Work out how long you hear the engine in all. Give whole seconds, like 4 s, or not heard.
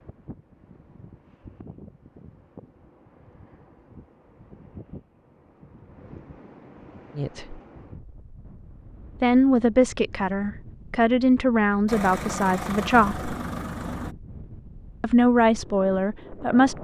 2 s.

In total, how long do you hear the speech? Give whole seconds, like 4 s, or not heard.
6 s.